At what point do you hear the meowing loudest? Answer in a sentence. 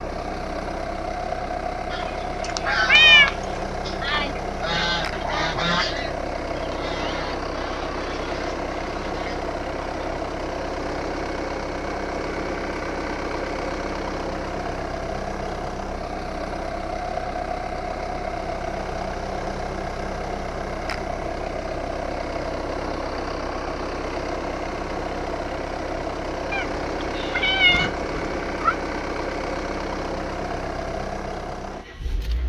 The volume of the meowing peaks at 3 seconds.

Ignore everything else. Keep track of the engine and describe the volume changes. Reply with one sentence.
The volume of the engine stays about the same.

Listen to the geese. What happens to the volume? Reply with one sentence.
The volume of the geese goes down.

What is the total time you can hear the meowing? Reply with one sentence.
The meowing can be heard for 3 seconds in total.